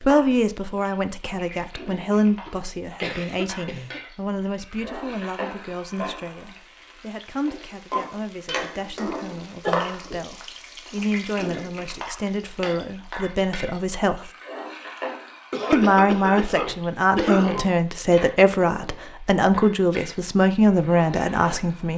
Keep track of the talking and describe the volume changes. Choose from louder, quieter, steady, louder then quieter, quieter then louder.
quieter then louder.